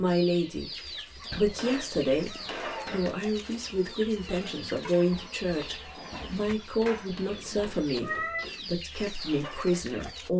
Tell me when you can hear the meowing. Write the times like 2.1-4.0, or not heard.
1.3-3.0, 7.5-8.4.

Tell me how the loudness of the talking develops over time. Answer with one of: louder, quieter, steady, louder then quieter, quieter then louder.
steady.